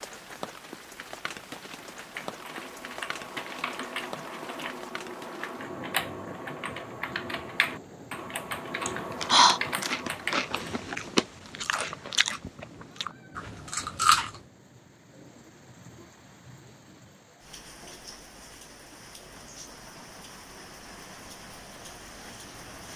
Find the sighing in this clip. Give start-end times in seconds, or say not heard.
8.8-9.6.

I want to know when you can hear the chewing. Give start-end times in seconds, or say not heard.
9.1-14.4.